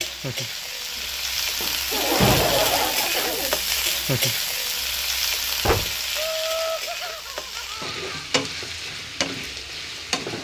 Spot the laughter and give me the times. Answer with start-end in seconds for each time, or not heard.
1.9-3.5, 6.2-8.3.